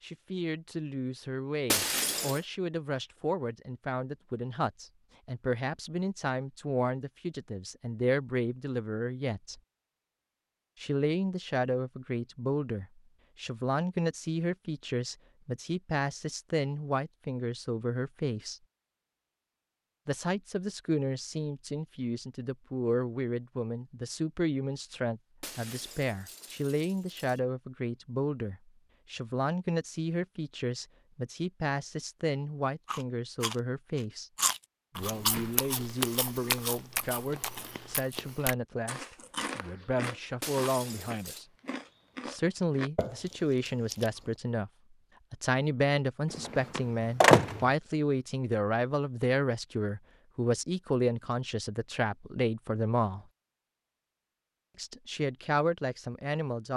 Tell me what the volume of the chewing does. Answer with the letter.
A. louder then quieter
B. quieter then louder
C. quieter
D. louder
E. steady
C.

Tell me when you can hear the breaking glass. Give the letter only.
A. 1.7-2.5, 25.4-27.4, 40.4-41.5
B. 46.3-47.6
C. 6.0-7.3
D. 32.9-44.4
A.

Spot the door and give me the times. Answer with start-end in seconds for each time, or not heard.
46.3-47.6.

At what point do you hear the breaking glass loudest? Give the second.
2 s.